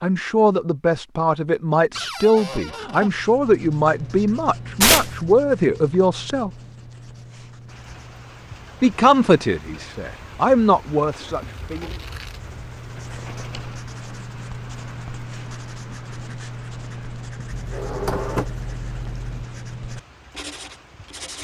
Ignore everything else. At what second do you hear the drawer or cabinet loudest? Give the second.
18 s.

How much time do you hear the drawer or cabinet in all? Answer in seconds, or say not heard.
3 s.